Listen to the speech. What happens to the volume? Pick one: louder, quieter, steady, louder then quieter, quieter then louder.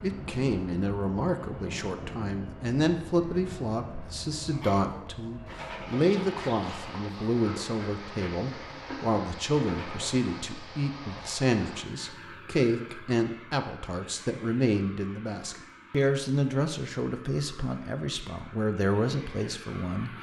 steady.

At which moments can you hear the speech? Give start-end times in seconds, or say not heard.
0.0-20.1.